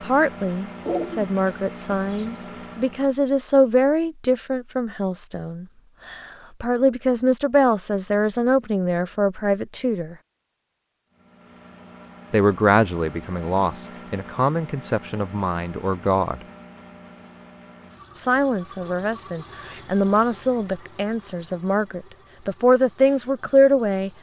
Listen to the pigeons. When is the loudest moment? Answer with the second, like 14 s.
1 s.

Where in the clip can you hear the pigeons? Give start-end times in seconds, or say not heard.
0.8-2.5.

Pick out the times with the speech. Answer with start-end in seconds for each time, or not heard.
0.0-10.2, 12.3-16.4, 18.1-24.1.